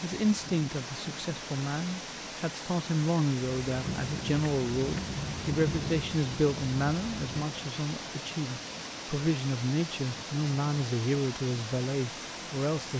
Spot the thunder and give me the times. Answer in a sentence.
The thunder can be heard from 3.6 to 7.5 s.